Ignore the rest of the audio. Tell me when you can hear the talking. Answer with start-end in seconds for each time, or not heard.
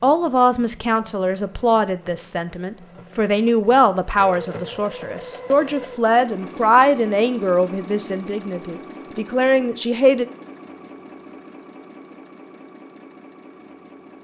0.0-10.2.